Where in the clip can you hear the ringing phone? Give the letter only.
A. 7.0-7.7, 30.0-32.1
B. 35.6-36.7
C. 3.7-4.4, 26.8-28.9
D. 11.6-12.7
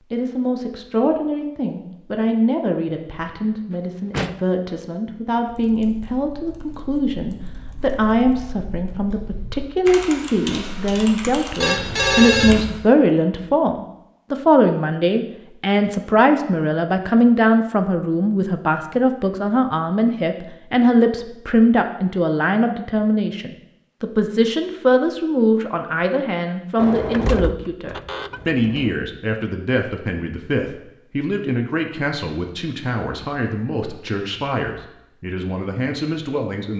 D.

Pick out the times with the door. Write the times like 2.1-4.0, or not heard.
3.7-4.4, 26.8-28.9.